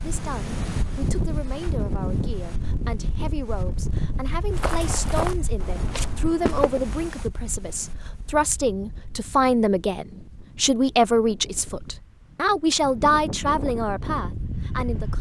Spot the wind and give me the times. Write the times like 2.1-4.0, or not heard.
0.0-15.1.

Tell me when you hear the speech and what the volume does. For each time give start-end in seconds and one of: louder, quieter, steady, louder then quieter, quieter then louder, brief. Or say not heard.
0.0-15.1 louder.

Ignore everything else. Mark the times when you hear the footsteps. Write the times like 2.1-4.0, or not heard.
4.5-7.1.